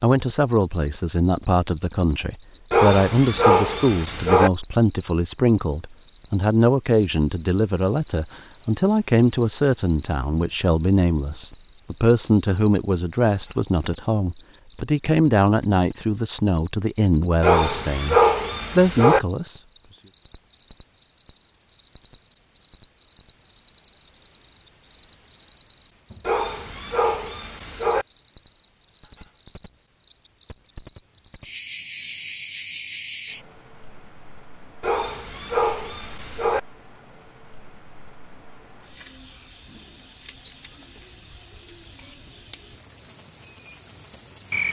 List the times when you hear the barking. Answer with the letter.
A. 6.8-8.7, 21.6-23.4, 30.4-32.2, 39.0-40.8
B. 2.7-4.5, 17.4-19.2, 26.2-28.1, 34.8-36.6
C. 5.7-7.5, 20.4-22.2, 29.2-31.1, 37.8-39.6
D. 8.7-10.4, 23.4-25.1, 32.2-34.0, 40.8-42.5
B.